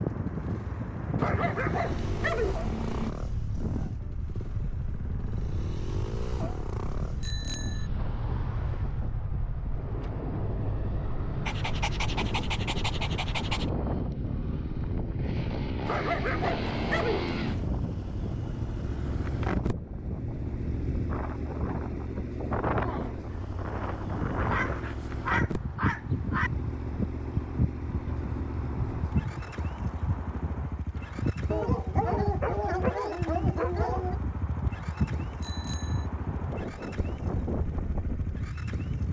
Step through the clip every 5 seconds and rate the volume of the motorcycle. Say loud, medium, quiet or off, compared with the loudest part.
loud, loud, loud, loud, loud, loud, medium, medium.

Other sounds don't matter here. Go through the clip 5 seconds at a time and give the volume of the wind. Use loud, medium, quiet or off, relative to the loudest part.
loud, medium, loud, loud, loud, loud, loud, loud.